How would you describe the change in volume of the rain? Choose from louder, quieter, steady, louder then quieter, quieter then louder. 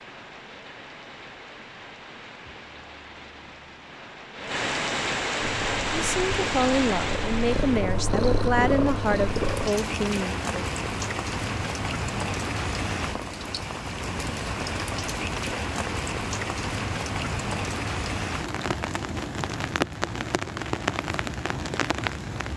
louder.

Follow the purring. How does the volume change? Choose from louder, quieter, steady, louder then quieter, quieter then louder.
louder.